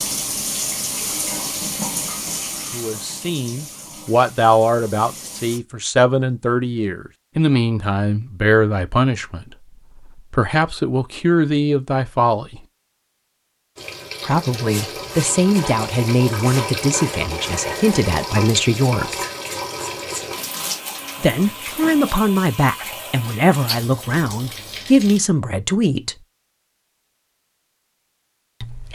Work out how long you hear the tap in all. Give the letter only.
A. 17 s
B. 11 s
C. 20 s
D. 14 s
A.